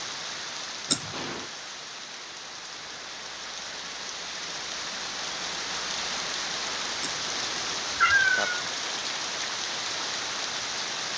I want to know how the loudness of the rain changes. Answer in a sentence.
The loudness of the rain goes up.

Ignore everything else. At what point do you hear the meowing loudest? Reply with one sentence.
The loudest moment of the meowing is at 8 seconds.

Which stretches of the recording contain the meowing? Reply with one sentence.
The meowing can be heard from 0.9 to 1.4 s and from 7.0 to 8.5 s.